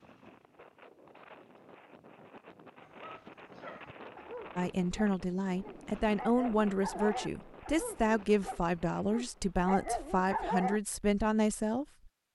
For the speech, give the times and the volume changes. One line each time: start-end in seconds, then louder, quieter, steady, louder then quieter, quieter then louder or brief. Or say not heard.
4.5-11.8 steady.